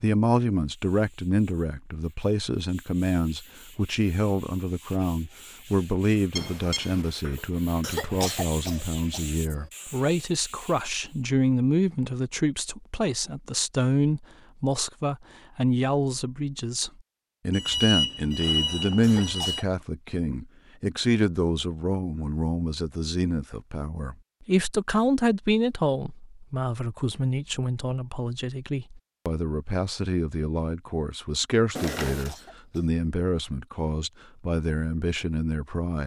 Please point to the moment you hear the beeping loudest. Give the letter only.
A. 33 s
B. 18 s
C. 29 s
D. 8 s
B.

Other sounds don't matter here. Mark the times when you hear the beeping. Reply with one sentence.
The beeping can be heard from 6.3 to 7.1 s, from 17.5 to 19.6 s and from 31.8 to 32.4 s.